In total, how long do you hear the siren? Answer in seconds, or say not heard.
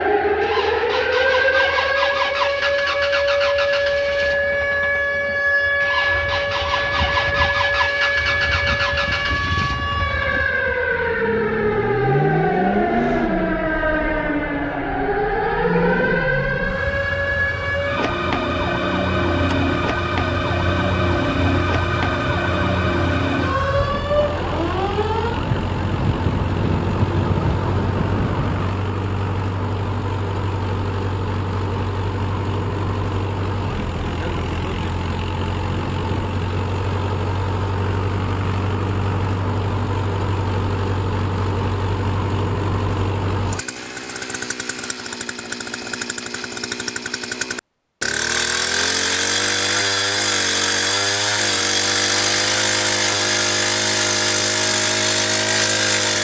29 s.